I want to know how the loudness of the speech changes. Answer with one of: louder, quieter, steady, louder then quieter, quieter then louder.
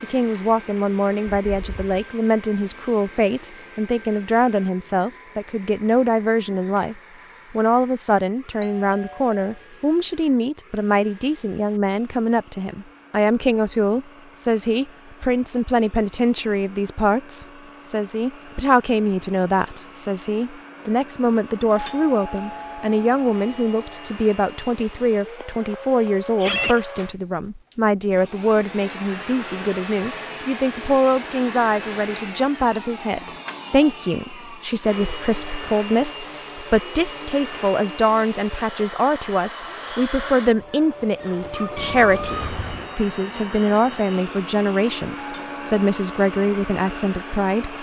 steady.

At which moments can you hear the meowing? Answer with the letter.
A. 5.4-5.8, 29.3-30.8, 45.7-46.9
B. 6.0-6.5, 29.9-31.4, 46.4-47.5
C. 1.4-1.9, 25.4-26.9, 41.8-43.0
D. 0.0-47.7
C.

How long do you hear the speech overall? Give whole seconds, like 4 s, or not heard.
48 s.